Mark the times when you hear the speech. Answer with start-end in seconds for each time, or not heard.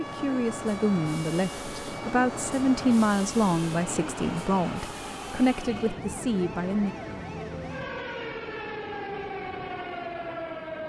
0.0-7.0.